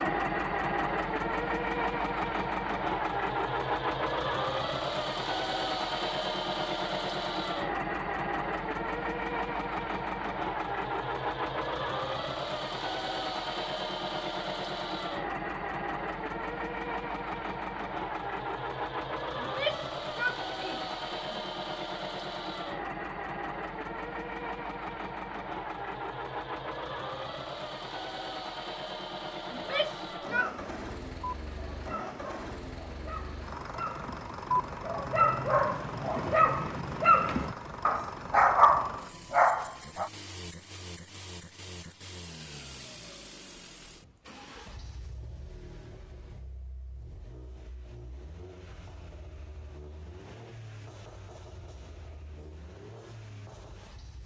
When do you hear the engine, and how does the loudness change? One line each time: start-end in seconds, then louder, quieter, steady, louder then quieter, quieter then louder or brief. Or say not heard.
0.0-54.2 quieter.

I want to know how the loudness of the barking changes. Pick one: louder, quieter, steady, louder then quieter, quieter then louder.
louder.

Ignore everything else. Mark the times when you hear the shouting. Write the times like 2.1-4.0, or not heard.
19.4-21.4, 29.5-30.6.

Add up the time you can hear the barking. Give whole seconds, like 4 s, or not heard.
11 s.